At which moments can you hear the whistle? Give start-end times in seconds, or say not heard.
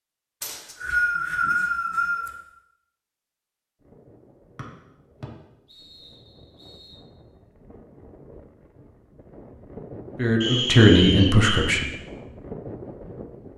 0.4-2.3, 4.5-7.0, 10.4-11.6.